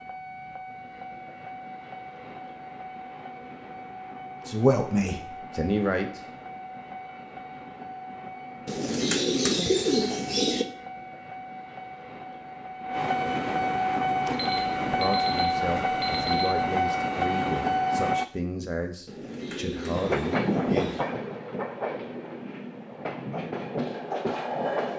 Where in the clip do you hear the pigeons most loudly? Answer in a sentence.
The loudest moment of the pigeons is at 10 seconds.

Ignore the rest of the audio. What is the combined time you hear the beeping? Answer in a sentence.
The beeping can be heard for 2 seconds in total.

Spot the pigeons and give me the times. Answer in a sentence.
The pigeons can be heard from 8.7 to 10.7 s and from 19.1 to 21.1 s.